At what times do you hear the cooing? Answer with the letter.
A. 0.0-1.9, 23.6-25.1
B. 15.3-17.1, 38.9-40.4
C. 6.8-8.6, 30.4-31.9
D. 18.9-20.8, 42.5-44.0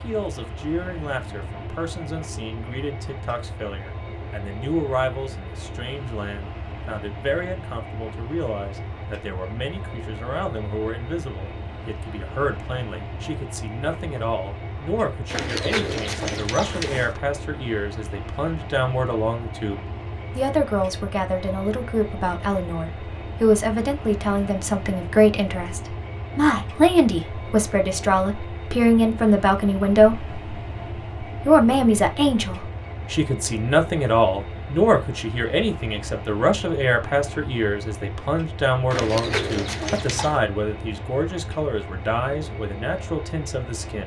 B.